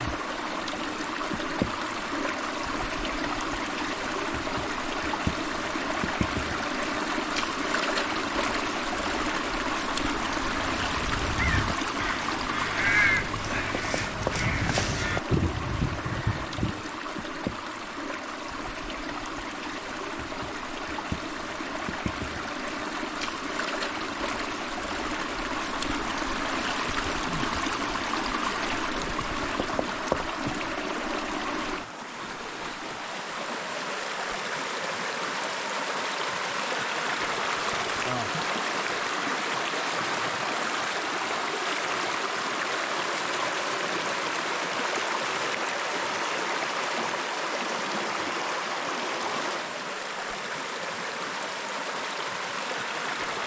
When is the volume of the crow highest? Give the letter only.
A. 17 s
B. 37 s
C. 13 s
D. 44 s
C.